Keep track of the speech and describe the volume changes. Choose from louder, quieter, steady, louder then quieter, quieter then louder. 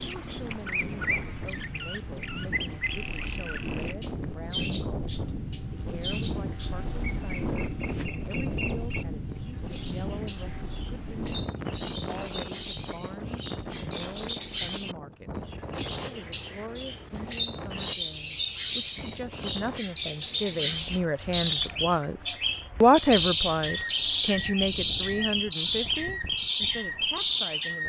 louder.